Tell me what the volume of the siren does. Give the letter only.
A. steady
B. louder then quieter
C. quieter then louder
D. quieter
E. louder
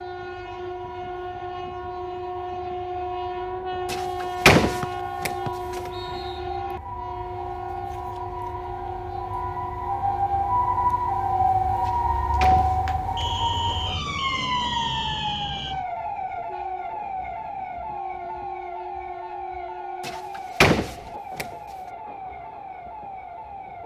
B.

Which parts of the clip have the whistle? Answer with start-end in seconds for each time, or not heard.
4.8-6.4, 13.2-15.8.